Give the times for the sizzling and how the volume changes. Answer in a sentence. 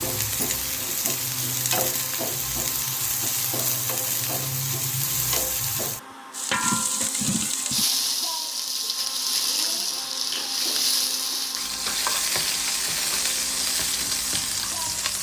The sizzling can be heard from 0.0 to 15.1 s, at a steady volume.